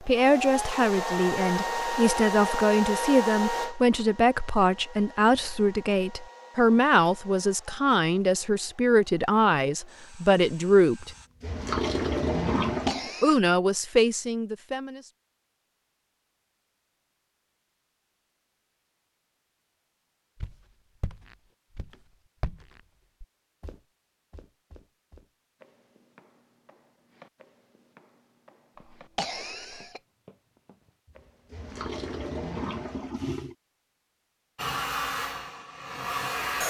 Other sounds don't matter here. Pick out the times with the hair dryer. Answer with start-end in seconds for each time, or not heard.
0.0-11.3, 34.5-36.6.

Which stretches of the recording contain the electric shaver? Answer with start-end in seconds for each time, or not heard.
not heard.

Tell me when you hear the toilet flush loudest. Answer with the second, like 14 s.
12 s.